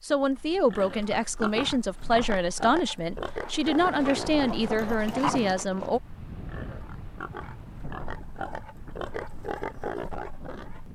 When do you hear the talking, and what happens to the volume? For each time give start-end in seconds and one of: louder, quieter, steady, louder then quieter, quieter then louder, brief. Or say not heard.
0.0-6.0 steady.